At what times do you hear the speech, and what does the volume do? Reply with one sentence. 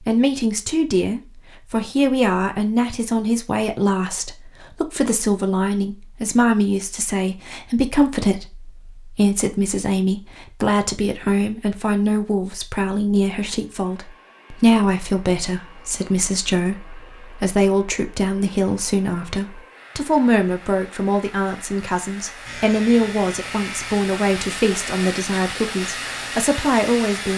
The speech can be heard from 0.0 to 27.3 s, at a steady volume.